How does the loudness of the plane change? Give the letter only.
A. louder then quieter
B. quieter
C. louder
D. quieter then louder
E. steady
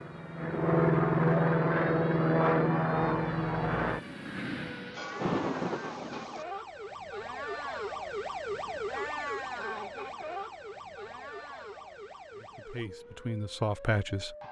B.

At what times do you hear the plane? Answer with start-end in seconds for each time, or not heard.
0.0-5.0.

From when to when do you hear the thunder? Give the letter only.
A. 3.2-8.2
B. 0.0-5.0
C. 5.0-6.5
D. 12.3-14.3
C.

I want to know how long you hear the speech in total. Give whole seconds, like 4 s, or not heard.
2 s.